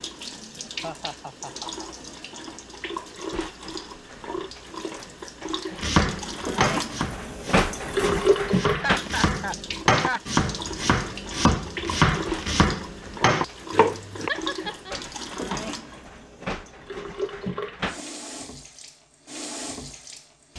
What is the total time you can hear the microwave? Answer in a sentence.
The microwave can't be heard in this clip.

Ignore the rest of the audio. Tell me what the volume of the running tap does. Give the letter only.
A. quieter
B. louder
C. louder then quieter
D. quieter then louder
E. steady
C.